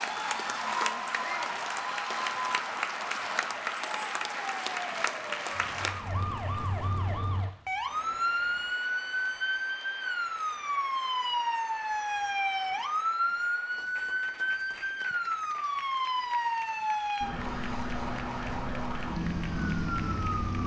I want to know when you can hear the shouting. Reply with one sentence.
The shouting can be heard from 1.1 to 1.6 s.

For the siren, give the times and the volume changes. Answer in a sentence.
You can hear the siren from 0.0 to 20.6 s, getting louder.